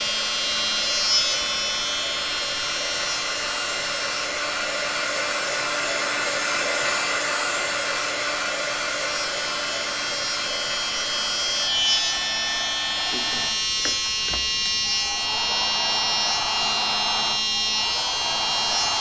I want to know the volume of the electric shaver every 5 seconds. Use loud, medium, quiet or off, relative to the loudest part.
loud, medium, loud, loud.